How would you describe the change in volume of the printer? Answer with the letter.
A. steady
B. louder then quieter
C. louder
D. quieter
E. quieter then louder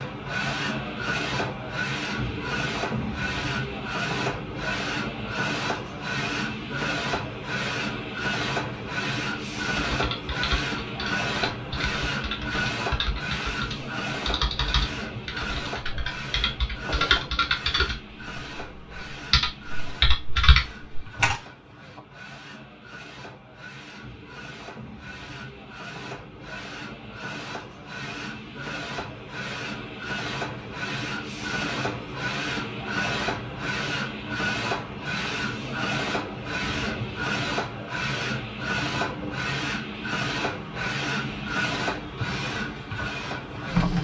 E.